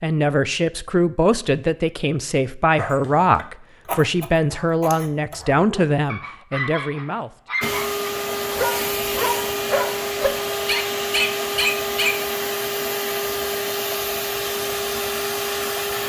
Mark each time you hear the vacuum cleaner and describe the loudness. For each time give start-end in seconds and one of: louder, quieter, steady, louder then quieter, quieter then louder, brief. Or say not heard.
7.6-16.0 steady.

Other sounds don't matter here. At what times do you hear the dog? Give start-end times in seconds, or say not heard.
2.8-12.2.